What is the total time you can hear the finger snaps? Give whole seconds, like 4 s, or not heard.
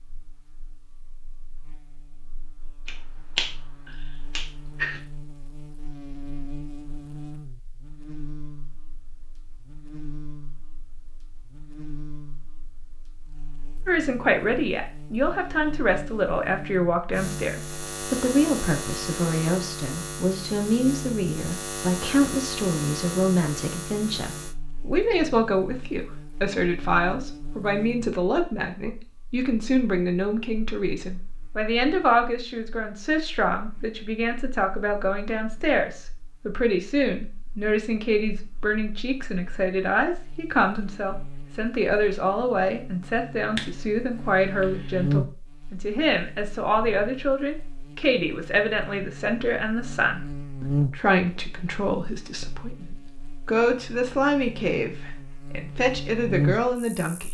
4 s.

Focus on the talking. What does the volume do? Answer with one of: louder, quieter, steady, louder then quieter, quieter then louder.
steady.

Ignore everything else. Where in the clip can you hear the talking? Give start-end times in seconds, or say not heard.
13.8-57.2.